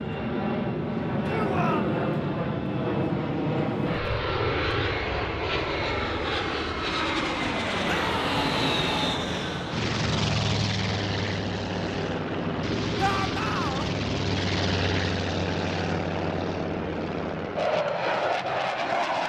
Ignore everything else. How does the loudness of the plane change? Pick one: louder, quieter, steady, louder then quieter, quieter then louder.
steady.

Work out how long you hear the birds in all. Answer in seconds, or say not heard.
not heard.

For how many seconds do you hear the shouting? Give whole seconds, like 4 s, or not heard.
3 s.